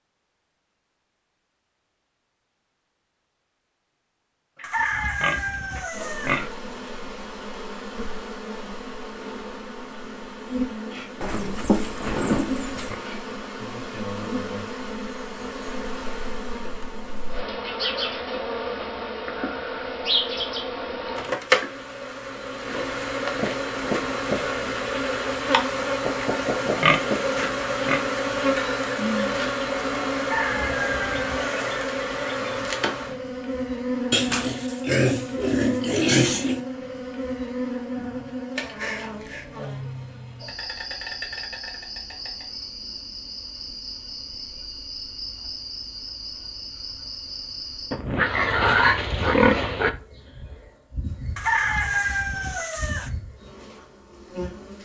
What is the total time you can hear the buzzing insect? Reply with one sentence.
The buzzing insect can be heard for 49 seconds in total.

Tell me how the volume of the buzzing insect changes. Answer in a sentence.
The volume of the buzzing insect goes up, then down.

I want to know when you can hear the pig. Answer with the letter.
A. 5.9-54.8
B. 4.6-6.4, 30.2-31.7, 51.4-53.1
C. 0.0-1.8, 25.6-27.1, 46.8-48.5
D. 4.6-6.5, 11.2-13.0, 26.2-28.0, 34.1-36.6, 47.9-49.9
D.